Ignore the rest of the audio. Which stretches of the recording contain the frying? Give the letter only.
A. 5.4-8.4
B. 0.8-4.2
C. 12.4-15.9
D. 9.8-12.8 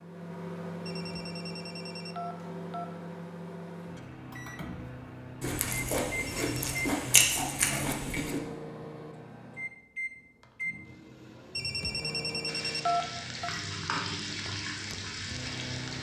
C.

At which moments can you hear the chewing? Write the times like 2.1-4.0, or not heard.
5.4-8.4.